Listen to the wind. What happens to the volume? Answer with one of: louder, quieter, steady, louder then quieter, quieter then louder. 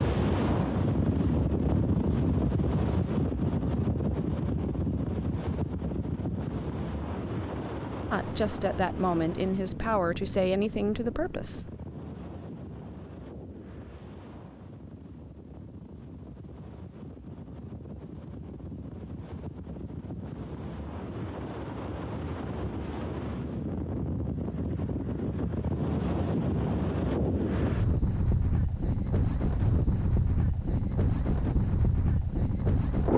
quieter then louder.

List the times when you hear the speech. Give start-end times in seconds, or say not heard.
8.1-11.7.